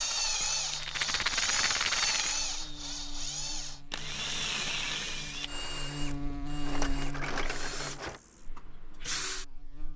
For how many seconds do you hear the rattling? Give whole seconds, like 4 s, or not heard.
3 s.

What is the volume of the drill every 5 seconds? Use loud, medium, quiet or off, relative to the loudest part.
loud, medium.